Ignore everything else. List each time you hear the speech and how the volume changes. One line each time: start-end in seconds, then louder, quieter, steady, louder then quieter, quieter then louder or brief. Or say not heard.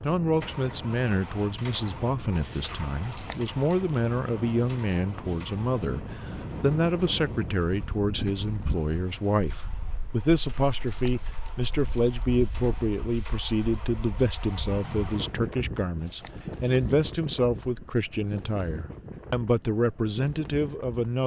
0.0-21.2 steady.